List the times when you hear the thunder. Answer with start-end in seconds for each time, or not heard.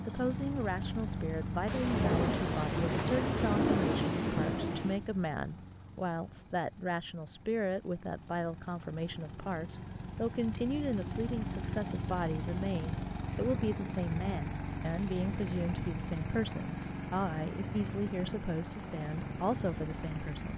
1.6-5.0.